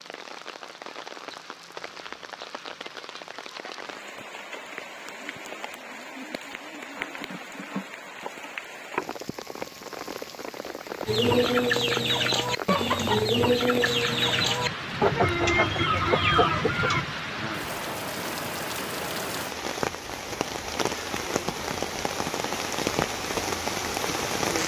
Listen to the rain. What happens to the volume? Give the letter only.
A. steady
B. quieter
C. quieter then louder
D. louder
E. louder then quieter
D.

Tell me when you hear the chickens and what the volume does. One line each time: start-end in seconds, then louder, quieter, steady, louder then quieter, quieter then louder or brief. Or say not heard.
11.1-17.1 steady.